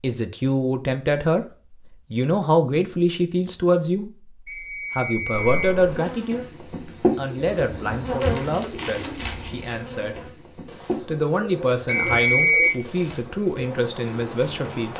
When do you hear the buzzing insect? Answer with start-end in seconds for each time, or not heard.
5.3-14.9.